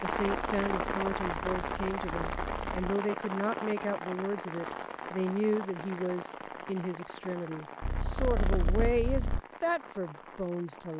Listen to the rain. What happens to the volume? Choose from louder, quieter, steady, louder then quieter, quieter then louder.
quieter.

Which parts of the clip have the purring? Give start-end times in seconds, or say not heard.
0.2-3.0, 7.8-9.4.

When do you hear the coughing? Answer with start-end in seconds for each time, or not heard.
not heard.